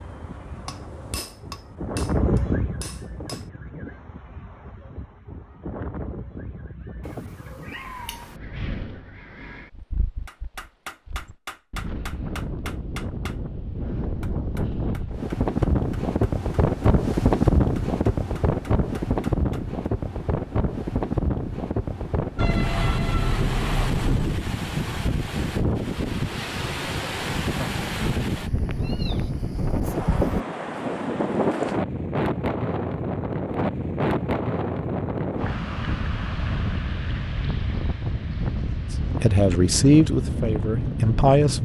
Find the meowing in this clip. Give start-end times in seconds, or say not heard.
7.0-8.3, 22.4-24.4, 28.4-30.4.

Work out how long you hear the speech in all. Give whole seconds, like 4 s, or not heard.
2 s.